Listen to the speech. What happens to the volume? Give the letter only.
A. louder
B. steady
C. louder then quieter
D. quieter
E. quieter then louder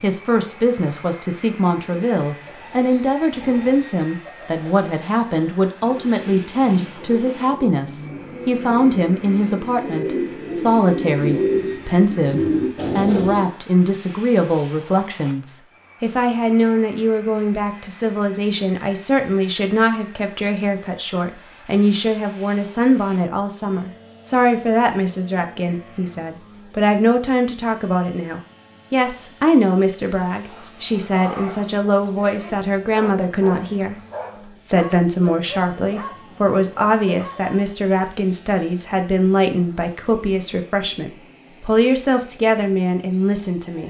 B.